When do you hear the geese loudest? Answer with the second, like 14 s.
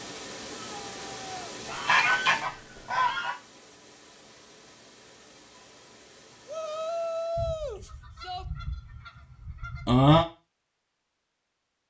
10 s.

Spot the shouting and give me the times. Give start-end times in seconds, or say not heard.
0.6-1.6, 6.5-8.4.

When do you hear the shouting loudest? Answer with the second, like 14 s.
7 s.